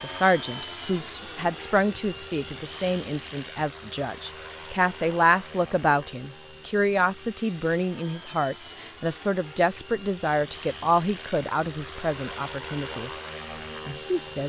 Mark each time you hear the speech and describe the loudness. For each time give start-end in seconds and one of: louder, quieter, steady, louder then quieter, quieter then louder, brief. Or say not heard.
0.0-13.1 steady
13.8-14.4 brief.